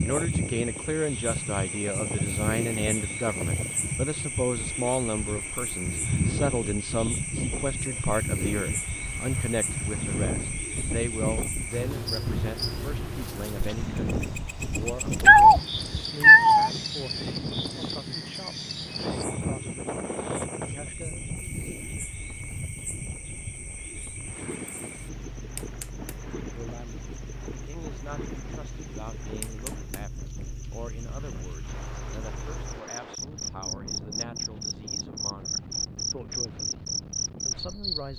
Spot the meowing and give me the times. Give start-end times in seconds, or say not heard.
14.8-16.7.